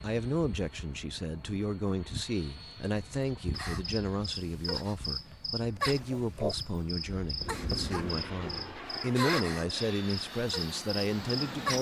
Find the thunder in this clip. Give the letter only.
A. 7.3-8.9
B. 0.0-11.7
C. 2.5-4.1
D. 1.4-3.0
A.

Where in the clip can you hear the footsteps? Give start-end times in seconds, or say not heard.
not heard.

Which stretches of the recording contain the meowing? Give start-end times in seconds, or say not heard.
not heard.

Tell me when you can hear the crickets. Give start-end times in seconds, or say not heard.
3.5-11.7.